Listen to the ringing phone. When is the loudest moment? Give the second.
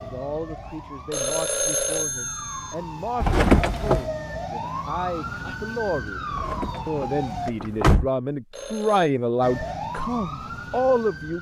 2 s.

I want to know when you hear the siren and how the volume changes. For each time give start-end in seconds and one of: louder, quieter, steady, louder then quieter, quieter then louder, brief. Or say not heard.
0.0-7.5 louder
9.4-11.3 brief.